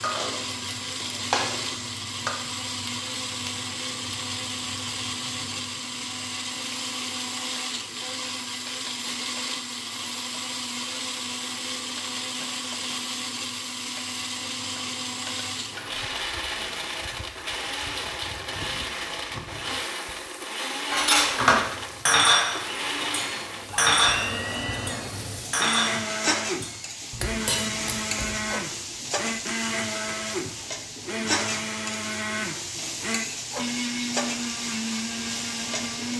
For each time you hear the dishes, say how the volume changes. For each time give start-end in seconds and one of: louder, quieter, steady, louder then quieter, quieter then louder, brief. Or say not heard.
0.0-2.3 brief
20.9-28.5 quieter.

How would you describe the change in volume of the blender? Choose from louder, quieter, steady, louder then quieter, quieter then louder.
steady.